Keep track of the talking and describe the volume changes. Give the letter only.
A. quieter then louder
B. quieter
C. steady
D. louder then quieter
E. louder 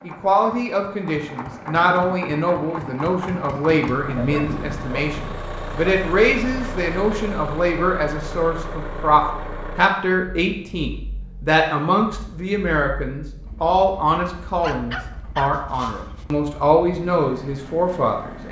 C.